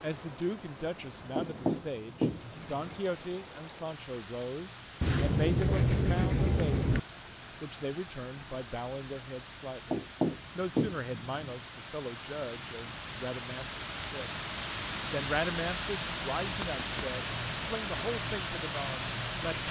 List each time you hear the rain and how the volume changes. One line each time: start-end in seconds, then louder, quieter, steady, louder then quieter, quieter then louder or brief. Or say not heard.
0.0-19.6 louder.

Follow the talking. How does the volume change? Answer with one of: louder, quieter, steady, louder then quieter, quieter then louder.
steady.